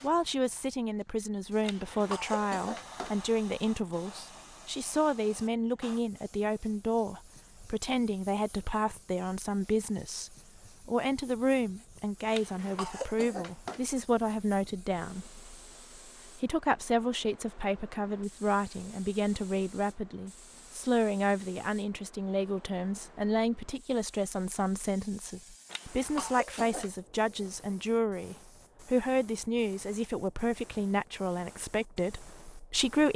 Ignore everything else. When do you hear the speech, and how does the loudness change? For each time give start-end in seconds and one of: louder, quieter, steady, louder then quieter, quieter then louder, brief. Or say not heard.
0.0-15.6 steady
16.4-33.1 steady.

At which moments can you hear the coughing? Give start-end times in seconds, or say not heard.
1.6-3.1, 12.3-13.8, 25.7-26.9.